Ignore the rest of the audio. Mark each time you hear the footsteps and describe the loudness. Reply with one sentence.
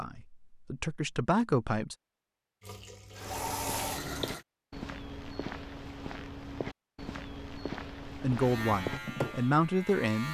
You can hear the footsteps from 3.2 to 9.0 s, at a steady volume.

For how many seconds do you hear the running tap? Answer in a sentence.
You can hear the running tap for 2 seconds altogether.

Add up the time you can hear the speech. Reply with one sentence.
You can hear the speech for 4 seconds altogether.